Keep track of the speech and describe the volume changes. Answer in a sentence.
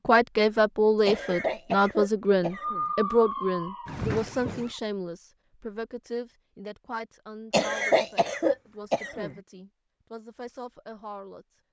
The loudness of the speech goes down.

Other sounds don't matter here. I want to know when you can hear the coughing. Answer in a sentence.
You can hear the coughing from 1.1 to 2.9 s and from 7.5 to 9.3 s.